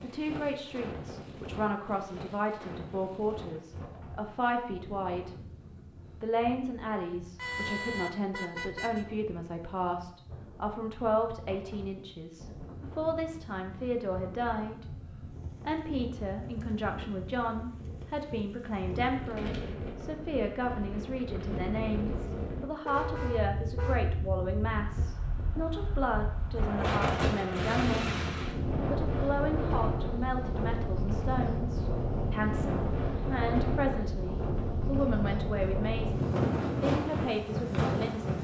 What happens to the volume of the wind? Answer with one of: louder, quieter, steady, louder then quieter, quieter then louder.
louder.